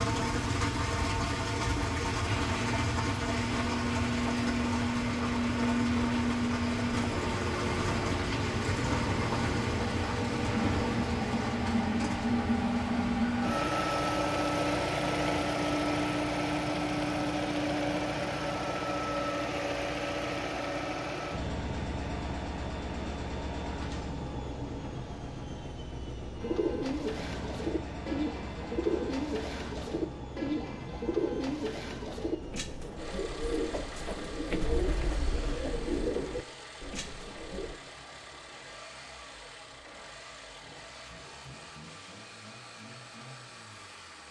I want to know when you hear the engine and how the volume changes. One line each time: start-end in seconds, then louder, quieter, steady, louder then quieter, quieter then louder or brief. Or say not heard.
0.0-44.2 quieter.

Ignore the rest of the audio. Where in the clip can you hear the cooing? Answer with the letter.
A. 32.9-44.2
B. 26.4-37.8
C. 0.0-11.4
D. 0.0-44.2
B.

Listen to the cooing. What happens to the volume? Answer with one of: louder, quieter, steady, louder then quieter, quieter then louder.
steady.